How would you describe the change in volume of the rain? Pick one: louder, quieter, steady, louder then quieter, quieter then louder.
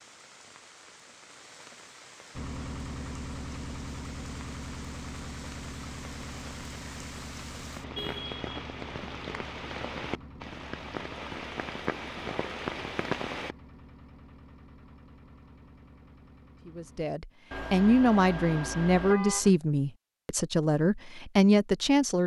louder.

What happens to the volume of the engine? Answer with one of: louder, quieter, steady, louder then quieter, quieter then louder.
quieter.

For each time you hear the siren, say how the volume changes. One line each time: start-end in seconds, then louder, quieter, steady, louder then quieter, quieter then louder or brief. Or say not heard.
not heard.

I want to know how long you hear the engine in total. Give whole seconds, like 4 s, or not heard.
15 s.